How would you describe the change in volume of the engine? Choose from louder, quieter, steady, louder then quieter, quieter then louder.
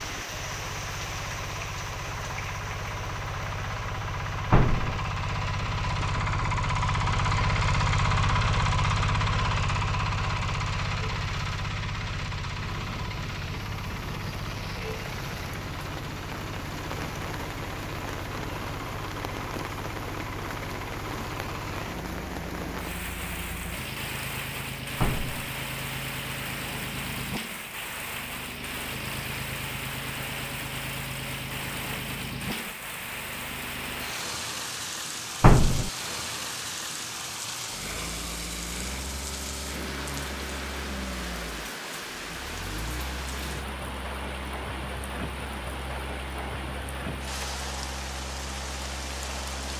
quieter.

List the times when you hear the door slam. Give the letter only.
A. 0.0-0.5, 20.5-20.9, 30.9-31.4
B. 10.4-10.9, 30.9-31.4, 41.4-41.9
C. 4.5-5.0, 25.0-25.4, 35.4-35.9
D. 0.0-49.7
C.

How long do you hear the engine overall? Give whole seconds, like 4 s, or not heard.
50 s.